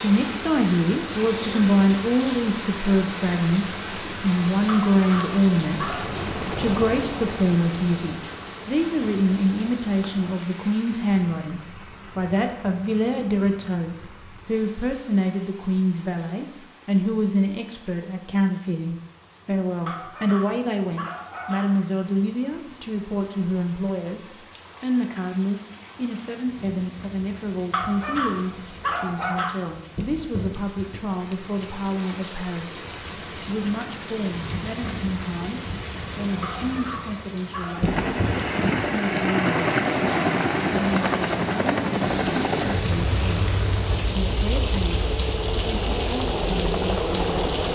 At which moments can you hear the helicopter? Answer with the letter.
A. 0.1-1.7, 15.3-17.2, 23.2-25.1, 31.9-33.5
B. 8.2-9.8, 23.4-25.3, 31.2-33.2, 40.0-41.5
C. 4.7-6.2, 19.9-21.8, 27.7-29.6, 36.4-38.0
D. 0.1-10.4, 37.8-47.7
D.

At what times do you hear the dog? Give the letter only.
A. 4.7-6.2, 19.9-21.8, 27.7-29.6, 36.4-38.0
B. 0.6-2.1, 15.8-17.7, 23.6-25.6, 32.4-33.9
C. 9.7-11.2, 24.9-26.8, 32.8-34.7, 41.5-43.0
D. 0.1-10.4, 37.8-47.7
A.